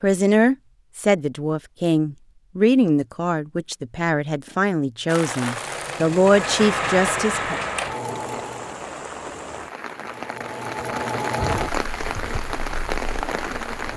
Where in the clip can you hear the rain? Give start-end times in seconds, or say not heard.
5.0-13.9.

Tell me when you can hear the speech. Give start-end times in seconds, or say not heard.
0.0-7.5.